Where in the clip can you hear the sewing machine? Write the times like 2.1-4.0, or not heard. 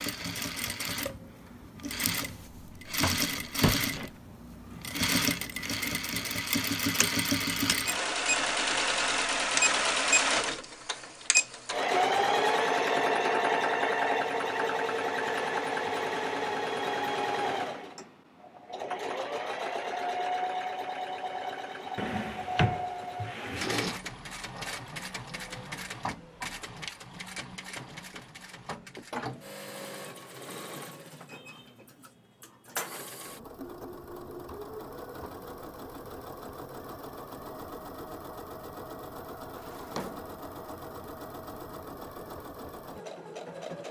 0.0-43.8.